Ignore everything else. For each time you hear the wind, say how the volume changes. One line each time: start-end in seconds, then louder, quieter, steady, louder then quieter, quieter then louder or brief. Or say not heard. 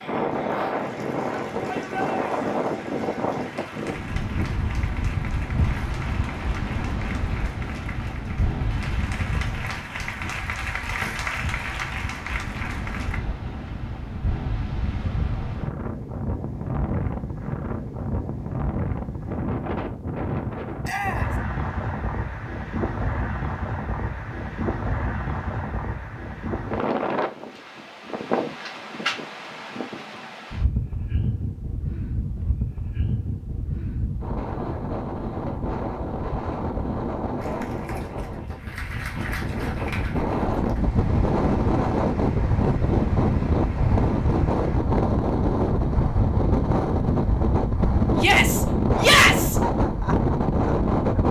0.0-51.2 louder.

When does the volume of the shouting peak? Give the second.
49 s.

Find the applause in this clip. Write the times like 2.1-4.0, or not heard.
0.0-13.2, 37.4-44.8.